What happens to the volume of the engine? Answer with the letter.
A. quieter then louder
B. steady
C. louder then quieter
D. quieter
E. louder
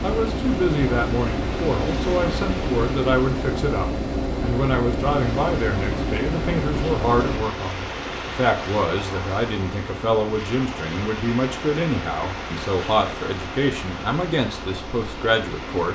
D.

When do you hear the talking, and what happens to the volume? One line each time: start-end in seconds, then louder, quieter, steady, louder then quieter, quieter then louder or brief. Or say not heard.
0.0-15.8 steady.